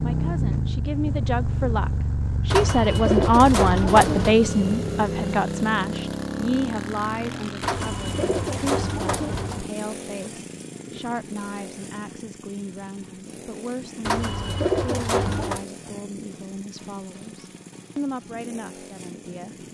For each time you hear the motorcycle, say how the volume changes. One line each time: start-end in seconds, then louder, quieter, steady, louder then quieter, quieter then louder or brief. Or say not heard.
0.0-19.6 quieter.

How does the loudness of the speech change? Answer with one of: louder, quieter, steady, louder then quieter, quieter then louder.
quieter.